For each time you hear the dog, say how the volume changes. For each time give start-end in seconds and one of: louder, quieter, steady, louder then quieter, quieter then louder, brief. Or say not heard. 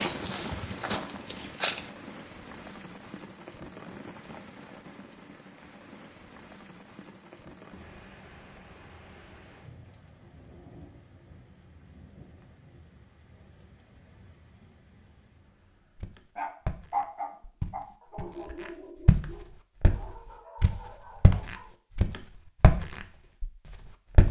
16.4-21.7 quieter.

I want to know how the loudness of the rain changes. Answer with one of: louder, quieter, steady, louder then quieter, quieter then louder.
quieter.